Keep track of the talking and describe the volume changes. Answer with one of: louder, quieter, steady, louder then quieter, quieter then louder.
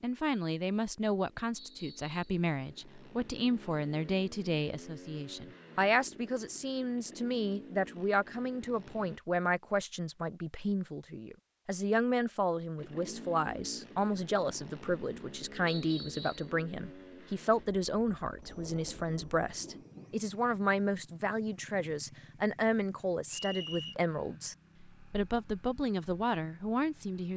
steady.